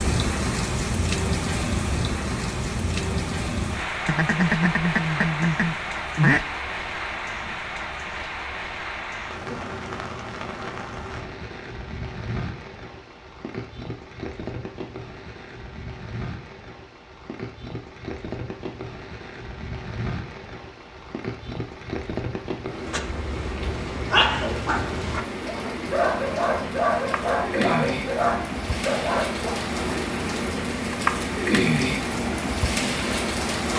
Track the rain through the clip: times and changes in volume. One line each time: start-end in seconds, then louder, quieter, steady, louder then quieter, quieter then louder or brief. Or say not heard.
0.0-33.7 quieter then louder.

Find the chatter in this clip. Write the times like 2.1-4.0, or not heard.
not heard.